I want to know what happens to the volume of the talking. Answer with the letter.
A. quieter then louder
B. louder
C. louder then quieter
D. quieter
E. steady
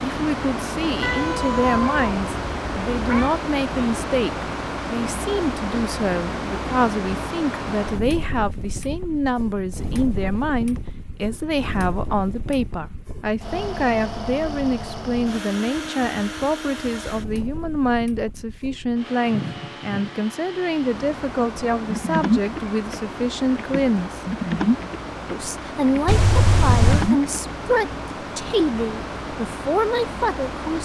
E.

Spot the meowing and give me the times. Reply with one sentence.
You can hear the meowing from 1.0 to 3.4 s and from 26.1 to 27.1 s.